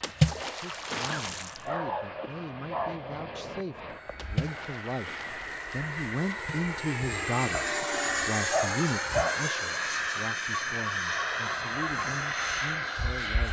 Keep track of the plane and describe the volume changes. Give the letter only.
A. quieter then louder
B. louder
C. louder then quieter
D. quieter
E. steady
B.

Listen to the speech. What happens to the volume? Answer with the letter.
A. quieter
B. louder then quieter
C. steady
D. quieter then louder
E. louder
B.